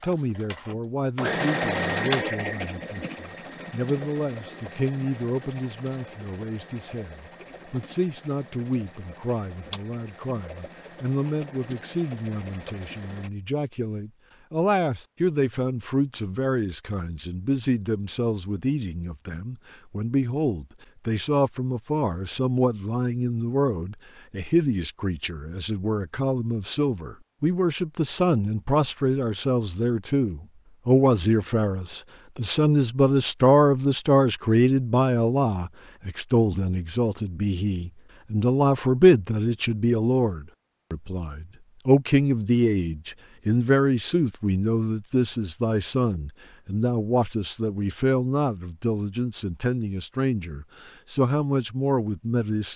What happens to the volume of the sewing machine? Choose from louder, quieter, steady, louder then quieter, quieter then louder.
quieter.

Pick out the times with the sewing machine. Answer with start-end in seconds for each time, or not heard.
0.0-13.3.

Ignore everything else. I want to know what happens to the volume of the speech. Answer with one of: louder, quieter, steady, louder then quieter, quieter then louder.
louder.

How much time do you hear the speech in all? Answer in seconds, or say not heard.
53 s.